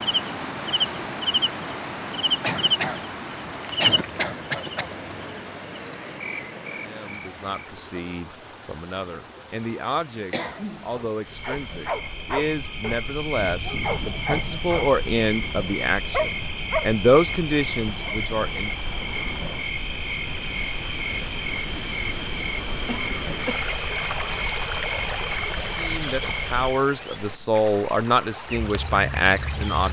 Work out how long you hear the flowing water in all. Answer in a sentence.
You can hear the flowing water for 30 seconds altogether.